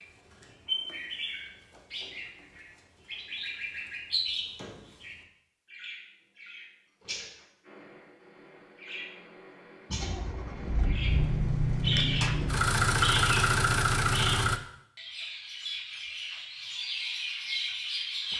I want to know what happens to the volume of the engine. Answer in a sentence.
The loudness of the engine goes up.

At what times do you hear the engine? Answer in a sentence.
You can hear the engine from 9.9 to 14.6 s.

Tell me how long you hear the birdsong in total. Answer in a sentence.
The birdsong can be heard for 18 seconds in total.